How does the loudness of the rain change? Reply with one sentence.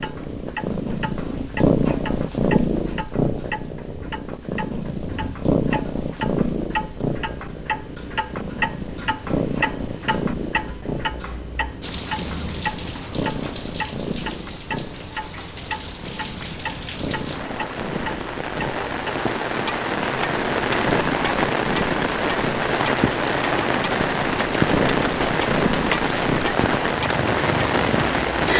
The volume of the rain goes up.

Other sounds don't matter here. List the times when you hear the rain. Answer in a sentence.
You can hear the rain from 11.8 to 28.5 s.